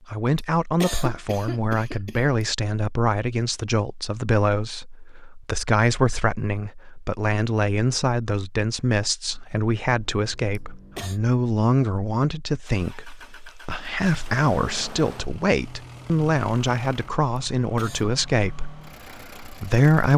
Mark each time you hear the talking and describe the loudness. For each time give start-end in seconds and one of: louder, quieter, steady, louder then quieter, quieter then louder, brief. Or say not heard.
0.1-20.1 steady.